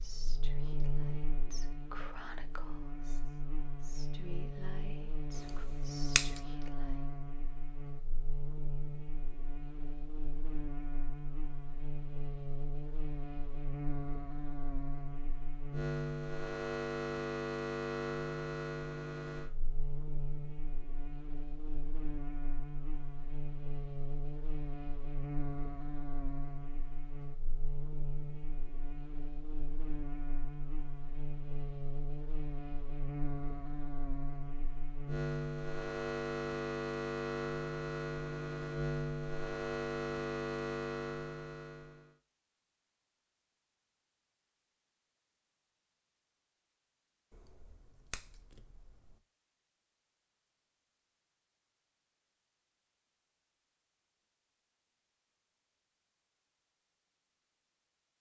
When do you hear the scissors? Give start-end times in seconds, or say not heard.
5.3-6.4, 47.3-49.1.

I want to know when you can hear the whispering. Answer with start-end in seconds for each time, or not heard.
0.0-7.0.